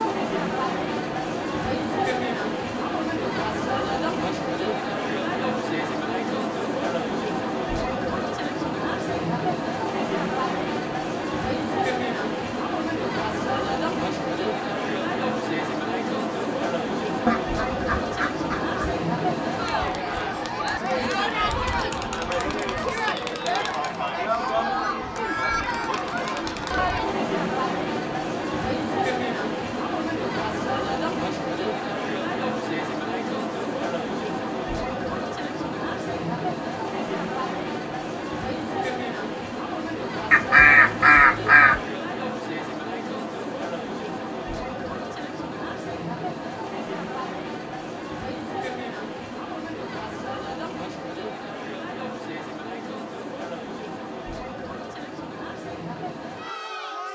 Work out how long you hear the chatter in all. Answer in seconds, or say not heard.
57 s.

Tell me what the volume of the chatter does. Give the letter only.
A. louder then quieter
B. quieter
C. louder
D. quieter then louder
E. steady
B.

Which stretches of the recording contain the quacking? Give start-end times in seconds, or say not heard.
17.2-18.9, 40.3-41.8.